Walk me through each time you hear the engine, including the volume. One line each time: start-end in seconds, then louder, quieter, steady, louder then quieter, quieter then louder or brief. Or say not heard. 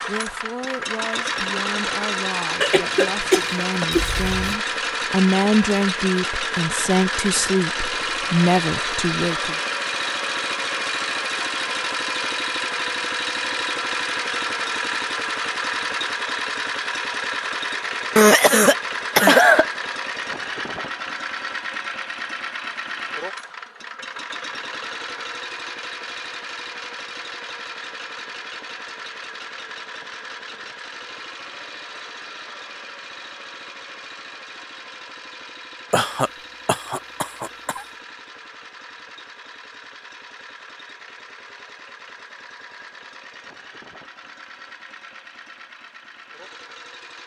0.0-47.2 quieter.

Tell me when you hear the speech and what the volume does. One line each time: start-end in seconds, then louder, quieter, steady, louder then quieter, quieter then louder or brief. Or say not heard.
0.1-9.6 louder.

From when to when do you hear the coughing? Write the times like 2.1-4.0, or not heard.
2.6-4.5, 18.1-19.6, 35.9-37.9.